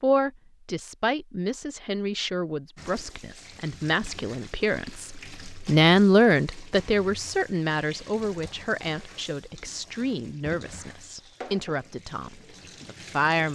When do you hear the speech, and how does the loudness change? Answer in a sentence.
You can hear the speech from 0.0 to 13.5 s, getting louder then quieter.